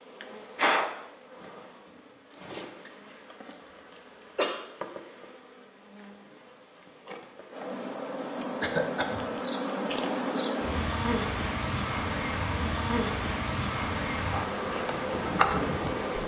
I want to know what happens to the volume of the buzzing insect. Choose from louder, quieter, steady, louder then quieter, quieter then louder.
quieter then louder.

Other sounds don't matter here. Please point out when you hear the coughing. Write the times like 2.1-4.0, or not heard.
3.9-4.6, 8.6-9.2.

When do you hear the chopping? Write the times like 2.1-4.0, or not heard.
not heard.